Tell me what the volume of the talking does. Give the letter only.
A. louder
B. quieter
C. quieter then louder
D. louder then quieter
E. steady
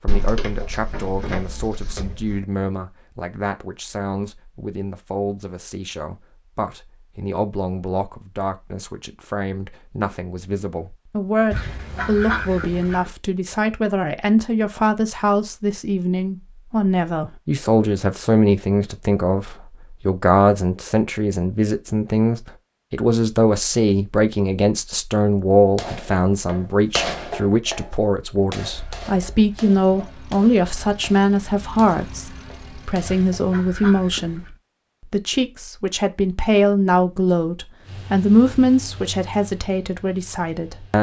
A.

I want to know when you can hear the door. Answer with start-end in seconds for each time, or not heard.
0.1-2.4.